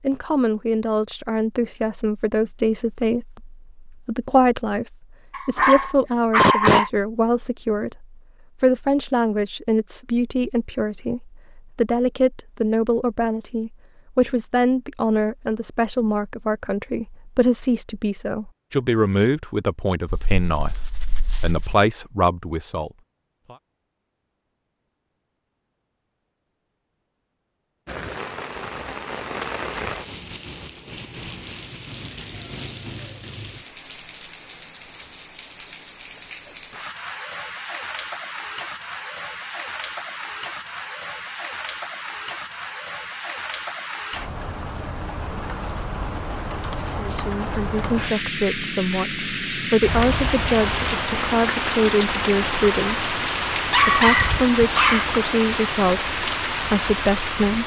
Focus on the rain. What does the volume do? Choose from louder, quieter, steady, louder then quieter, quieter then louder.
louder.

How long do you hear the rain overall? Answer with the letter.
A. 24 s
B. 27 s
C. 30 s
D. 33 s
C.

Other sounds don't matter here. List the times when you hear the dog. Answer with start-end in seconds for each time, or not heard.
5.3-6.9, 20.1-21.8, 53.7-55.4.